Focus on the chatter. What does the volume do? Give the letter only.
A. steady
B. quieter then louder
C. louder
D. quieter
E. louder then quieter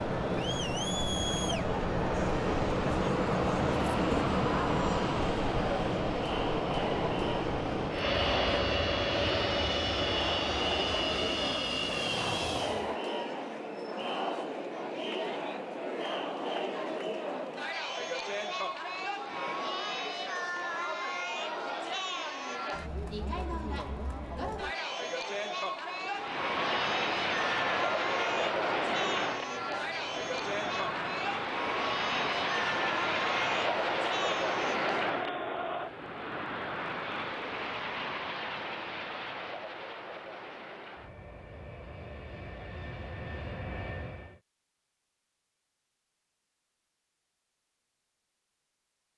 A.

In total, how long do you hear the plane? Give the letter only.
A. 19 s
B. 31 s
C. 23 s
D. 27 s
B.